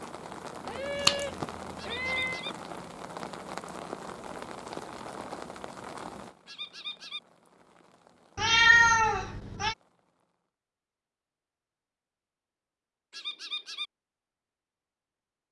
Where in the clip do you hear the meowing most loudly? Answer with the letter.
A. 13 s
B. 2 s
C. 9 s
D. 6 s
C.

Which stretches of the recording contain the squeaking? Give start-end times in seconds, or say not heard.
1.8-2.5, 6.5-7.2, 13.1-13.9.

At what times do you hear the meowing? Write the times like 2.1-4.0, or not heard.
0.7-2.4, 8.3-9.8.